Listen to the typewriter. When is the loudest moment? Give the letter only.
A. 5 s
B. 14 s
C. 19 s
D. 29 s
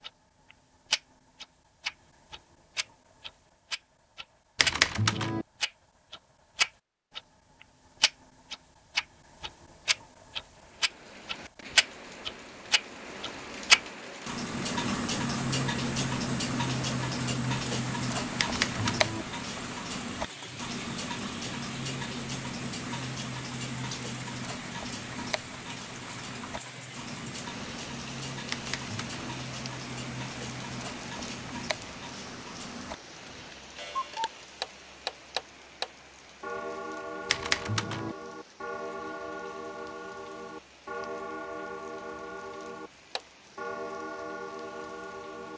A.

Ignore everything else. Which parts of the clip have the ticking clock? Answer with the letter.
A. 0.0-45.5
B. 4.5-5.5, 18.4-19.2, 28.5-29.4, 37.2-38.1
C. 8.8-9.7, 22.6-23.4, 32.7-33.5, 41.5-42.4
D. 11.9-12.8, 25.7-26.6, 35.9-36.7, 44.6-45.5
A.